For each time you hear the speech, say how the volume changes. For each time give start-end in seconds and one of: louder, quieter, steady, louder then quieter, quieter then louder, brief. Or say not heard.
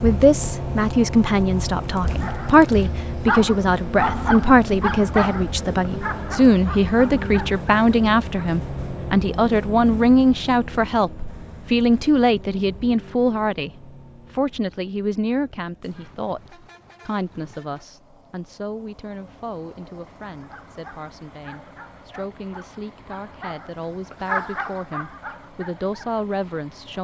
0.0-26.9 quieter.